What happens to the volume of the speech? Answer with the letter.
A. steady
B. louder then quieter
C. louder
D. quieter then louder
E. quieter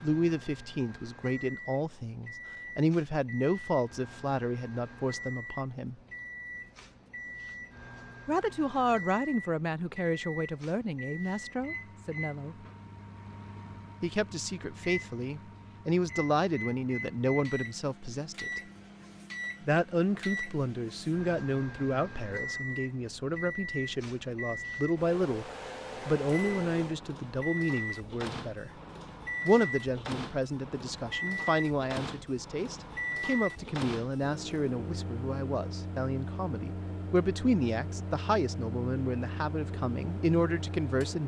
A.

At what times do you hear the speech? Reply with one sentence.
You can hear the speech from 0.0 to 6.0 s, from 8.2 to 12.6 s, from 14.0 to 18.6 s, from 19.6 to 28.7 s and from 29.4 to 41.2 s.